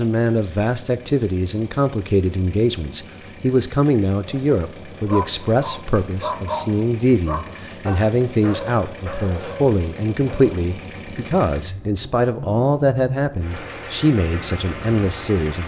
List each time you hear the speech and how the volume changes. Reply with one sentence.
The speech can be heard from 0.0 to 15.6 s, at a steady volume.